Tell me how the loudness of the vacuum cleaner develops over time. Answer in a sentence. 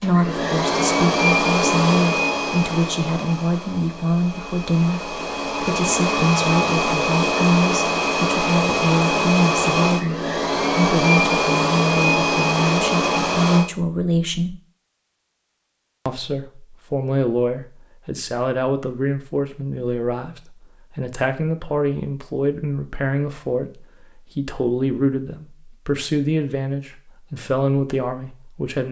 The volume of the vacuum cleaner goes down, then up.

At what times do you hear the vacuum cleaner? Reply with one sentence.
The vacuum cleaner can be heard from 0.0 to 13.7 s.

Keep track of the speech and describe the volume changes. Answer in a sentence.
The loudness of the speech stays about the same.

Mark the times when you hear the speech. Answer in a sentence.
You can hear the speech from 0.0 to 14.6 s and from 16.1 to 28.8 s.